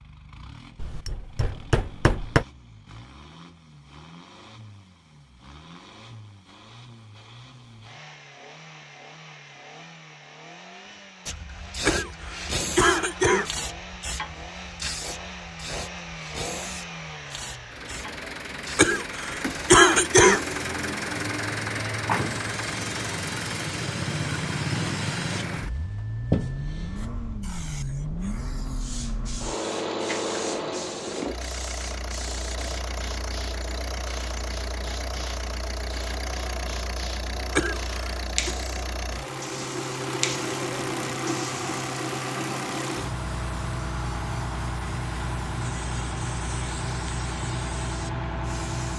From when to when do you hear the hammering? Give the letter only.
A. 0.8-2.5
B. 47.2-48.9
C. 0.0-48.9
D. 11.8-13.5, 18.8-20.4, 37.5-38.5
A.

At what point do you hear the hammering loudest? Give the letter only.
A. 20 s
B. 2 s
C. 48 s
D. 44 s
B.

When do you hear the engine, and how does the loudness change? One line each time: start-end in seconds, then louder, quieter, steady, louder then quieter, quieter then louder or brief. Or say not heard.
0.0-48.9 louder.